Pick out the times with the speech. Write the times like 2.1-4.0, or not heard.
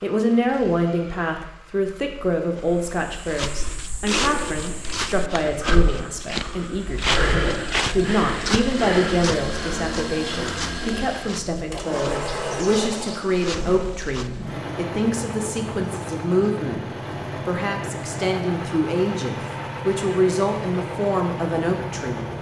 0.0-16.9, 17.4-22.3.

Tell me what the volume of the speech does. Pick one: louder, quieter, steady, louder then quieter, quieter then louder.
steady.